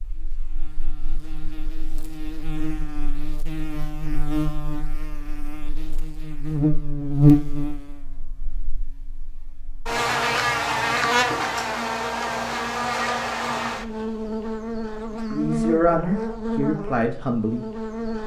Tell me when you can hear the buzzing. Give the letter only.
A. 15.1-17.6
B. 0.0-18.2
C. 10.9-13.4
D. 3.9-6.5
B.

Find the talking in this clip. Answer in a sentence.
You can hear the talking from 15.1 to 17.6 s.